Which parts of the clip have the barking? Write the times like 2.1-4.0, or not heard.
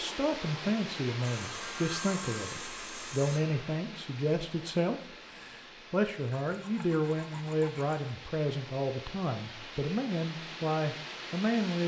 not heard.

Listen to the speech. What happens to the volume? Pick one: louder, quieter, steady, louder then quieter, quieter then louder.
steady.